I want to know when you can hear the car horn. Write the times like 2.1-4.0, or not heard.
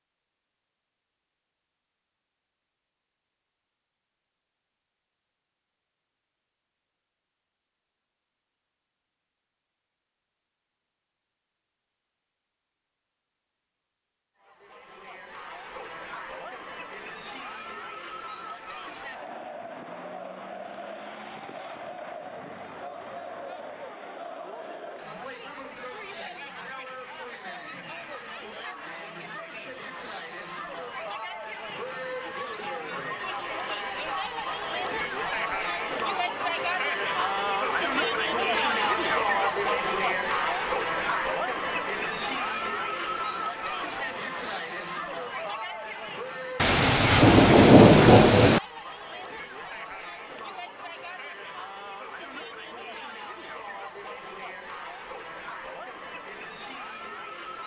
not heard.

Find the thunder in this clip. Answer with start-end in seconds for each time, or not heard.
46.6-48.6.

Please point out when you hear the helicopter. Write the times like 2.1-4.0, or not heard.
not heard.